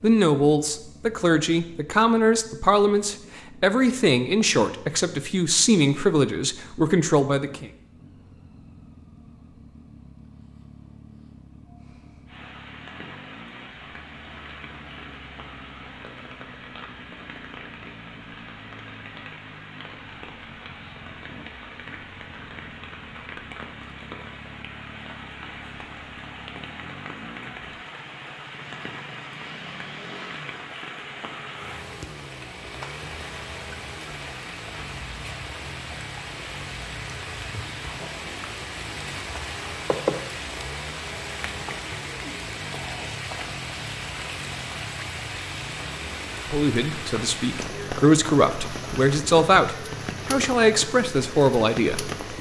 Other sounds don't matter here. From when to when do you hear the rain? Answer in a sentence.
The rain can be heard from 12.2 to 52.3 s.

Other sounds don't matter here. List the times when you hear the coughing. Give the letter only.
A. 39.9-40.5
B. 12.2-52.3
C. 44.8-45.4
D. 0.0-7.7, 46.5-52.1
A.